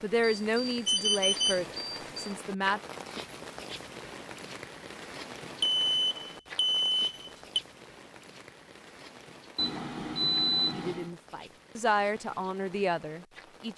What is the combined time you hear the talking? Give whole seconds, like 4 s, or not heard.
6 s.